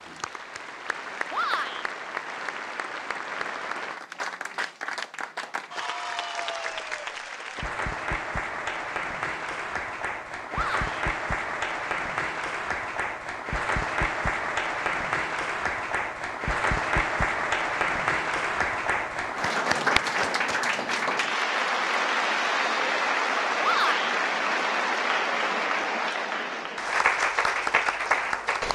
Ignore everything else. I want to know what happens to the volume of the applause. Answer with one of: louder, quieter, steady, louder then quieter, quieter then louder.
louder.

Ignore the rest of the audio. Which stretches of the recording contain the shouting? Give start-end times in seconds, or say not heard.
1.3-1.9, 10.5-11.1, 23.6-24.1.